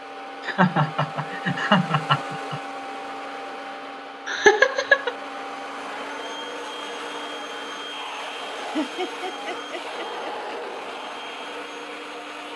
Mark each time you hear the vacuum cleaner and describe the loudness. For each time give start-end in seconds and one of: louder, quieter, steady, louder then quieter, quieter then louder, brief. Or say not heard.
0.0-12.5 steady.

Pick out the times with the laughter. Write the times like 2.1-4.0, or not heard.
0.5-2.6, 4.2-5.1, 8.6-10.6.